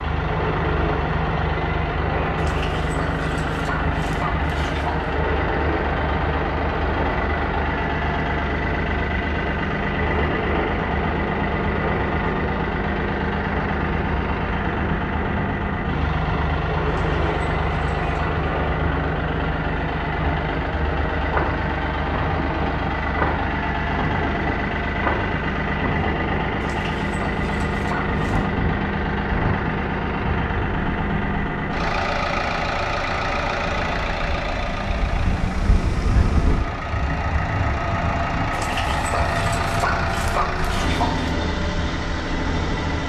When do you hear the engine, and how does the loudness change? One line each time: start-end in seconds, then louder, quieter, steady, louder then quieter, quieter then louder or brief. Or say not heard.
0.0-43.0 steady.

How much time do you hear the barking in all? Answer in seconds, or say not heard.
9 s.